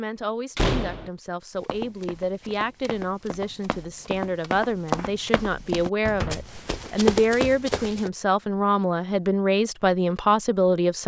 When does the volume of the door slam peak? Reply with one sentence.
The volume of the door slam peaks at 1 second.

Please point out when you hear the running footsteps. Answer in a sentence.
The running footsteps can be heard from 1.6 to 8.1 s.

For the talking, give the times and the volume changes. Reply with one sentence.
The talking can be heard from 0.0 to 11.0 s, getting louder.